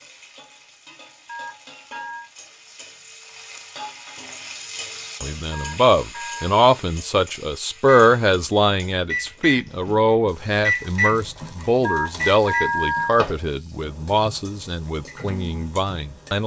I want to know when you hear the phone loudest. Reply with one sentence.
The loudest moment of the phone is at 13 seconds.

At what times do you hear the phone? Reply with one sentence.
The phone can be heard from 1.2 to 2.3 s, from 5.5 to 6.5 s and from 11.8 to 13.2 s.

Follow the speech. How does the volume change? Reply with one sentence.
The loudness of the speech goes down.